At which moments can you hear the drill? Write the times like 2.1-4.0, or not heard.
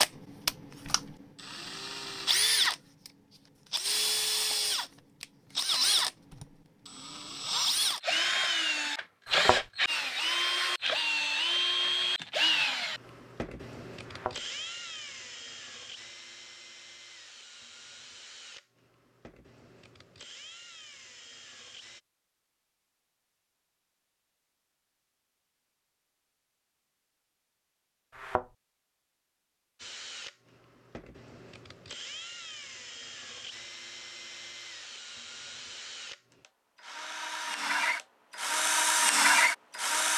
0.0-22.0, 29.8-40.1.